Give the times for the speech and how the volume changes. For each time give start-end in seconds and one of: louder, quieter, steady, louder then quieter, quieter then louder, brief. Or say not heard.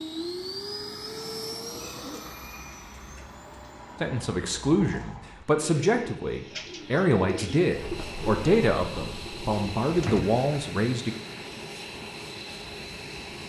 4.0-11.2 steady.